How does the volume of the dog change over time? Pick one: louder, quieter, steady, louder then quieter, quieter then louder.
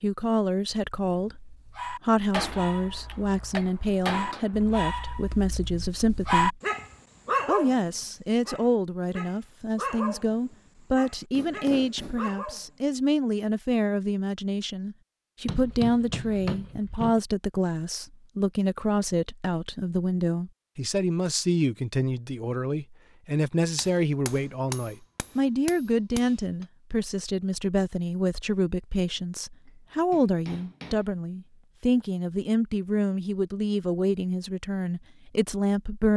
louder then quieter.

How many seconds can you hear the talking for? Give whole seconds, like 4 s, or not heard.
35 s.